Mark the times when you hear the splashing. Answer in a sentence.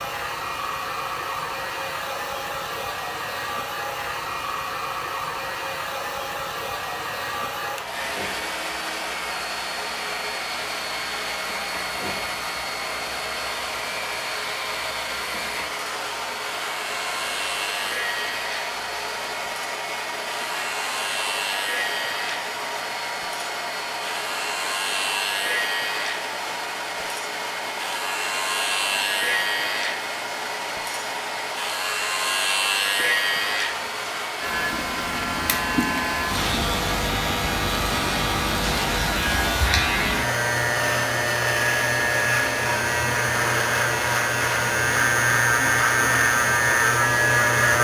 You can't hear the splashing here.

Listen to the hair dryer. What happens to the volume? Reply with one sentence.
The volume of the hair dryer stays about the same.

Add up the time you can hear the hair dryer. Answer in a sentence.
The hair dryer can be heard for 48 seconds in total.